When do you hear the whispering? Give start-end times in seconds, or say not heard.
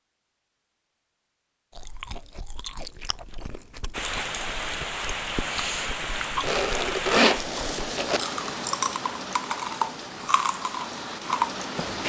not heard.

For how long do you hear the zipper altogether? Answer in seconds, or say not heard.
2 s.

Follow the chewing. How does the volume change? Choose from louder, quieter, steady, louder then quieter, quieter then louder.
louder.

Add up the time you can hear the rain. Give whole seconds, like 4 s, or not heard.
8 s.